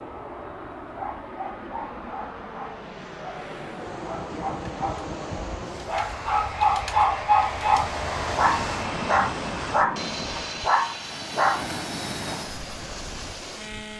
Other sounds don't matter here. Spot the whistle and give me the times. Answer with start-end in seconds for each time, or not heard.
not heard.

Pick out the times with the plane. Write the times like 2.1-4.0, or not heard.
0.0-13.9.